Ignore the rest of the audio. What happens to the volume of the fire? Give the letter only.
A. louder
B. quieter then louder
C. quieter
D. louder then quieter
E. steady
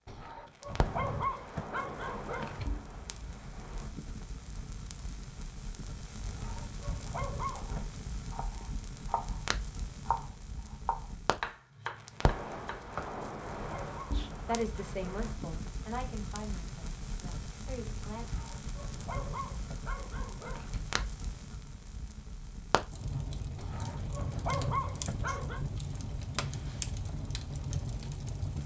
A.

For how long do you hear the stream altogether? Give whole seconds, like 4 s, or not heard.
not heard.